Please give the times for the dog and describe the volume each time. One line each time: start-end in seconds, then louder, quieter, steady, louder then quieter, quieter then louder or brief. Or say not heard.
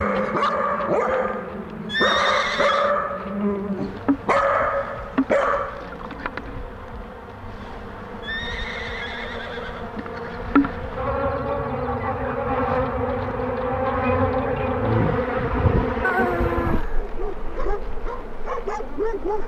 0.0-5.9 steady
17.0-19.4 brief.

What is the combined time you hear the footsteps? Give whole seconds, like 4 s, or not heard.
not heard.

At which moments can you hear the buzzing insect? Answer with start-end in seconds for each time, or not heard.
0.0-19.4.